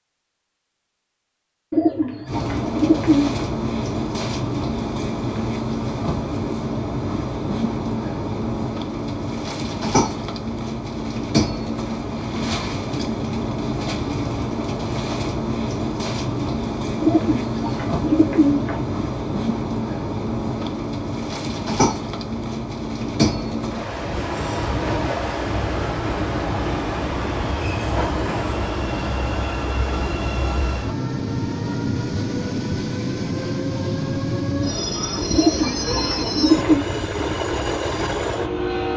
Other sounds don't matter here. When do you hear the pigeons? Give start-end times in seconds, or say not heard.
1.7-3.4, 17.0-18.8, 35.3-36.9.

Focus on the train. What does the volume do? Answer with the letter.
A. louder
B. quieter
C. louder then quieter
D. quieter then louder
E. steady
E.